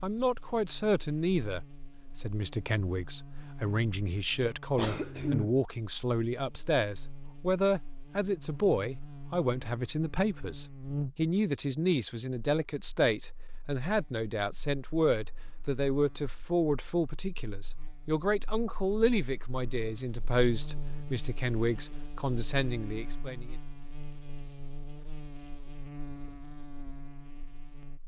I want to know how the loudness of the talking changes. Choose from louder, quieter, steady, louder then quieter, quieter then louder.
steady.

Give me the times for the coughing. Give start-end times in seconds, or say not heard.
4.8-5.7.